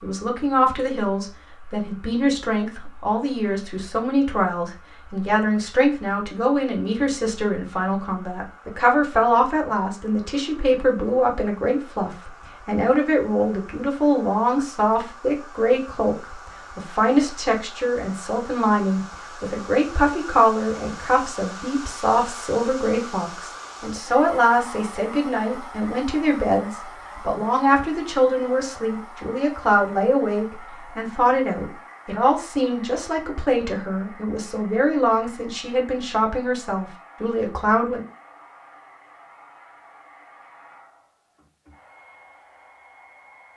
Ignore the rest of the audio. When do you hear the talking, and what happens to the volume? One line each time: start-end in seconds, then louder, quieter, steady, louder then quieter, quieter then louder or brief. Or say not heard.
0.0-38.0 steady.